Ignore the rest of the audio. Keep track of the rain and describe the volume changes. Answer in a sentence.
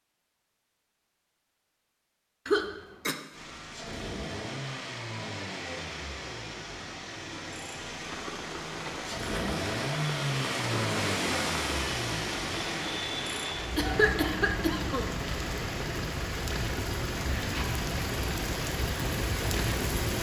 The loudness of the rain goes up.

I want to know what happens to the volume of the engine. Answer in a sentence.
The loudness of the engine goes up, then down.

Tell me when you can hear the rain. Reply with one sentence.
You can hear the rain from 8.1 to 20.1 s.